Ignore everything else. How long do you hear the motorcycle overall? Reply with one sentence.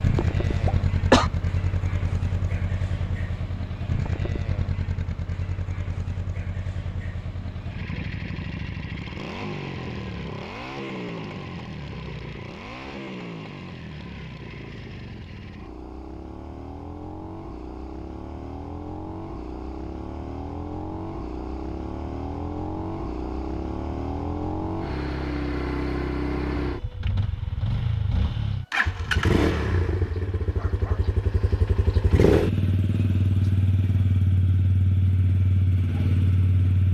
You can hear the motorcycle for 37 seconds altogether.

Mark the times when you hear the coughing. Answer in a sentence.
You can hear the coughing from 0.1 to 1.3 s.